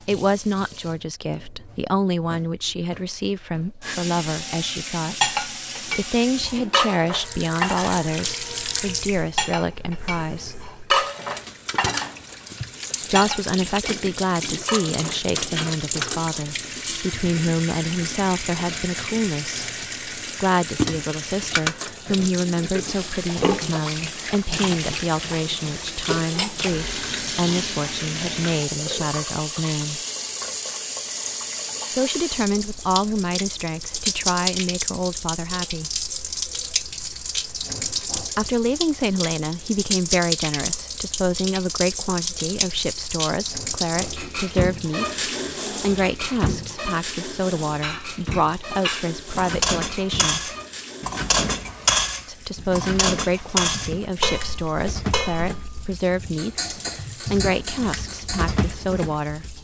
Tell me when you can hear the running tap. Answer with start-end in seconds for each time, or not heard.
0.0-59.5.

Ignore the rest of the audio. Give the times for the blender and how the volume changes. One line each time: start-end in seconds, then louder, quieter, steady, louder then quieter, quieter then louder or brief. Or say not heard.
not heard.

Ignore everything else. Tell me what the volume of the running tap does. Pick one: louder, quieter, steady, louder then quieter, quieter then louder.
louder then quieter.